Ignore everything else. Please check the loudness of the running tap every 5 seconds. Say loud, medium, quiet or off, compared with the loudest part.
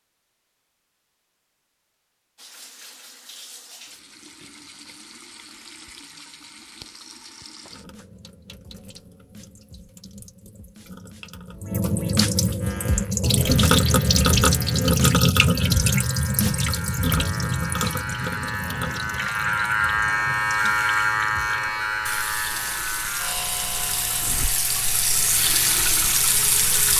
quiet, quiet, loud, loud, medium, loud.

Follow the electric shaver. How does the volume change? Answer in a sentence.
The loudness of the electric shaver goes up, then down.